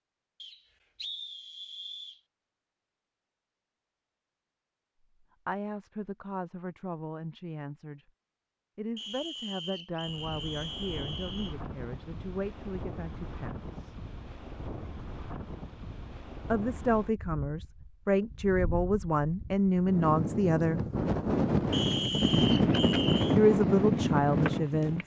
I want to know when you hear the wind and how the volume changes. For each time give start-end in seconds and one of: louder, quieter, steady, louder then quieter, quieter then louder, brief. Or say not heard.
10.0-25.0 louder.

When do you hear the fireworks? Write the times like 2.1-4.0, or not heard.
not heard.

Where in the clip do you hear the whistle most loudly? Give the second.
22 s.